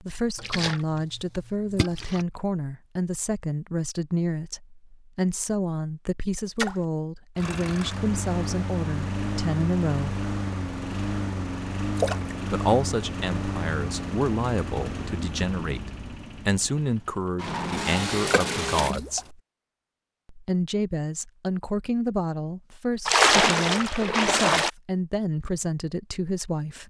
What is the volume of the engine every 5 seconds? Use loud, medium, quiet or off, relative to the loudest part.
off, loud, loud, loud, off, off.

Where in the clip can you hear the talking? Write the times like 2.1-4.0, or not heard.
0.0-10.2, 12.5-19.4, 20.2-26.8.